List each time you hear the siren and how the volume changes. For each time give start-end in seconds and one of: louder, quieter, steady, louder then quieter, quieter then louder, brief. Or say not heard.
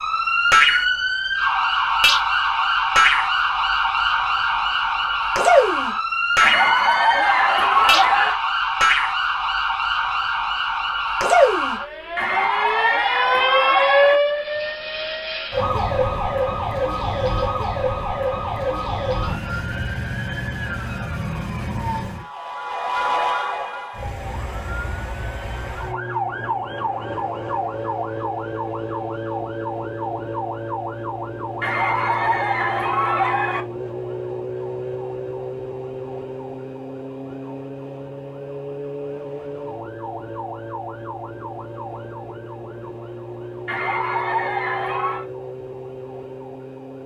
0.0-47.0 quieter.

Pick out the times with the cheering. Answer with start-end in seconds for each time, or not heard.
6.4-8.3, 12.2-14.2, 31.6-33.6, 43.6-45.2.